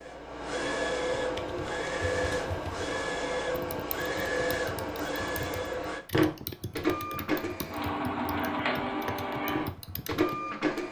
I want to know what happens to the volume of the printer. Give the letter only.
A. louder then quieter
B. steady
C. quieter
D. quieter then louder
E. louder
B.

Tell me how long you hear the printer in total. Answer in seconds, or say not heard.
11 s.